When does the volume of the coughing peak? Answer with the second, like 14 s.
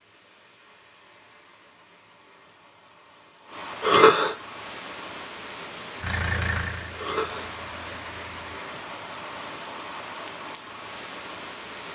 4 s.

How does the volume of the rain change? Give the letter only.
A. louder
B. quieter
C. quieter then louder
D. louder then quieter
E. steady
A.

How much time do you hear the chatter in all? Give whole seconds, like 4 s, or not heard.
not heard.